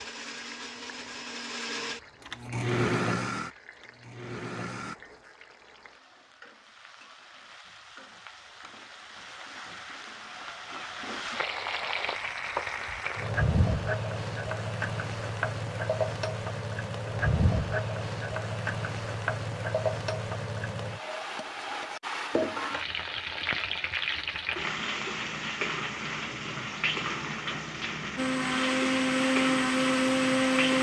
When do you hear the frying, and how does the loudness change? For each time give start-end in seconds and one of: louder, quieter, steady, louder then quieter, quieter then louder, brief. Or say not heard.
0.0-30.7 louder.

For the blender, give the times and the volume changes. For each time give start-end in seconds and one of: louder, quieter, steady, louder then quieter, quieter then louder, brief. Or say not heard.
0.0-5.0 louder then quieter
28.1-30.7 brief.